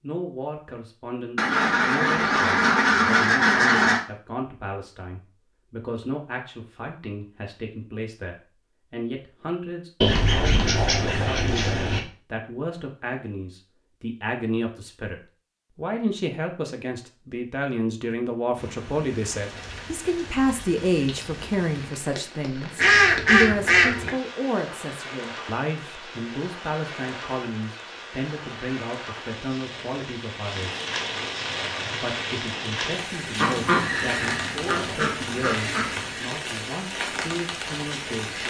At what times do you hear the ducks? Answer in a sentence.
The ducks can be heard from 1.4 to 4.0 s, from 10.0 to 12.0 s, from 22.8 to 24.1 s and from 33.4 to 36.2 s.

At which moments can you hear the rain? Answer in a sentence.
You can hear the rain from 18.6 to 38.4 s.